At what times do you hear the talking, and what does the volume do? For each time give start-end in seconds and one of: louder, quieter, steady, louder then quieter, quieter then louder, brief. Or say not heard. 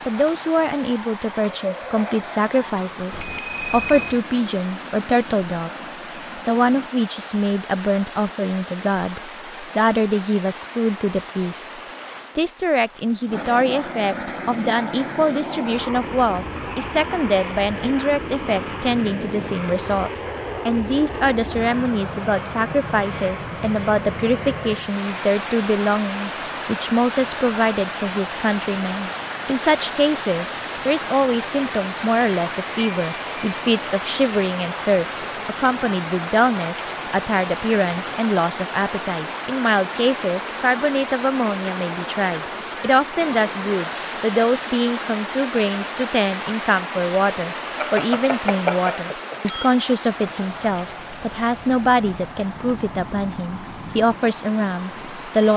0.1-55.5 steady.